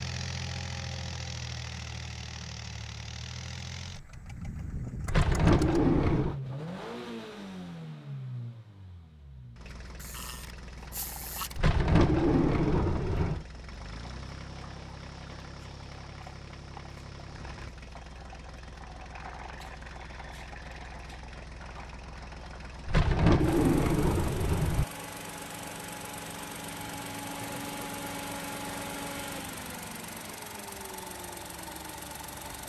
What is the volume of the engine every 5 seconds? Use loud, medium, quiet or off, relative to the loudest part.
loud, loud, medium, medium, medium, loud, loud.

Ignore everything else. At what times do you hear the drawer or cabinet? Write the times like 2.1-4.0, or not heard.
5.0-6.4, 11.6-13.4, 22.9-24.9.